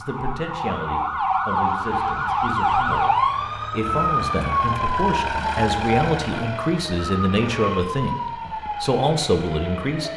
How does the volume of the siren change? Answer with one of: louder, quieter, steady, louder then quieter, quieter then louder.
quieter.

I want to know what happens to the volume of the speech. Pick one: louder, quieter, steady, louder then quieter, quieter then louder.
louder.